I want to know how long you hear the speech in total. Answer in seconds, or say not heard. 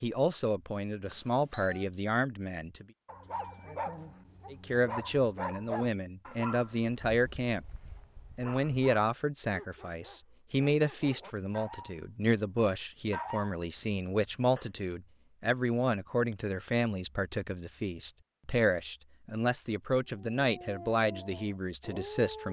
20 s.